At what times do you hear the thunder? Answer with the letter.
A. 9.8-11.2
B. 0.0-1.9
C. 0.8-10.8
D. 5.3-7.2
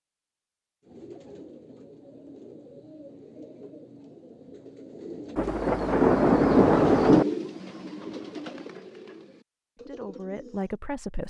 D.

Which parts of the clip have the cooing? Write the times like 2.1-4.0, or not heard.
0.8-10.8.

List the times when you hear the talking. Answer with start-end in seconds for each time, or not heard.
9.8-11.2.